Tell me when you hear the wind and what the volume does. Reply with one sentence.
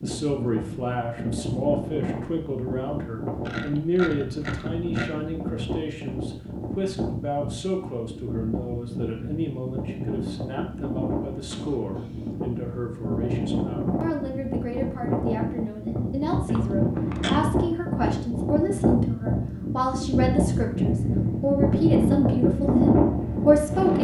You can hear the wind from 0.0 to 23.9 s, getting louder.